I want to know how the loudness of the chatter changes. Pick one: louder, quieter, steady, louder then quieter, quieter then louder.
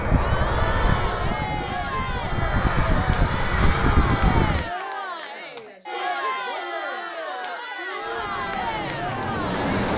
steady.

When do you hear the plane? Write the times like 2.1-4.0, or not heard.
0.0-4.7, 8.0-9.9.